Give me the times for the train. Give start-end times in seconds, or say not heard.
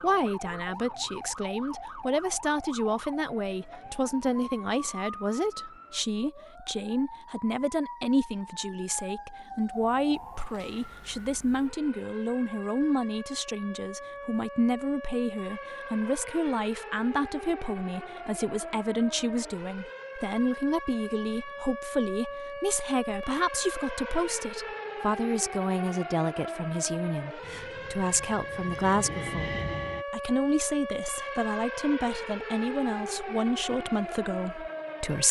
27.4-30.1.